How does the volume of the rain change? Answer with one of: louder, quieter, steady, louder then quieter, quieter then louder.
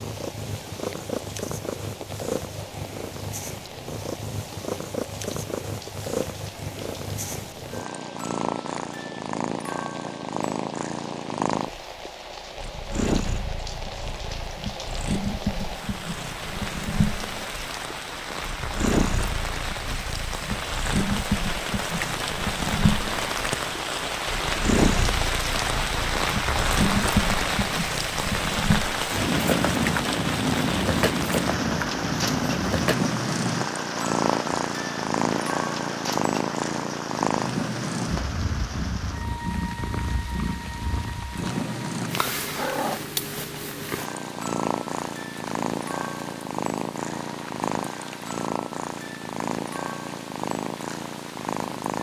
louder then quieter.